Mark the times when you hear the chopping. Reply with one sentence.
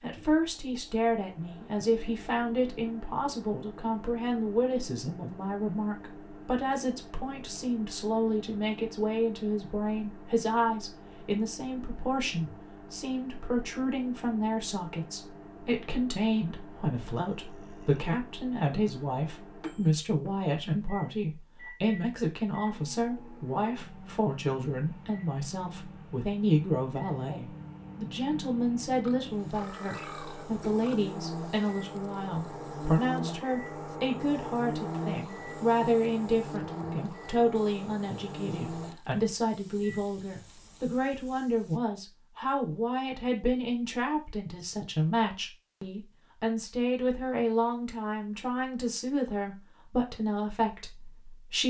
You can't hear the chopping here.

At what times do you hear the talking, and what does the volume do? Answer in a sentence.
You can hear the talking from 0.0 to 51.6 s, at a steady volume.